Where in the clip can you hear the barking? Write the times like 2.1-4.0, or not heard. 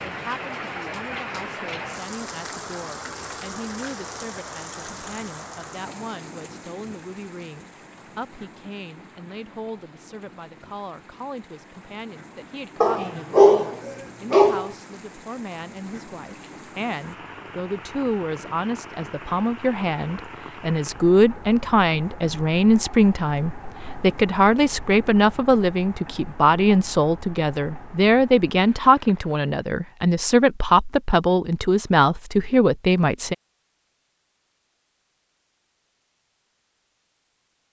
12.8-14.8.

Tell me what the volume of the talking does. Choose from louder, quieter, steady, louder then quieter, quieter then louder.
louder.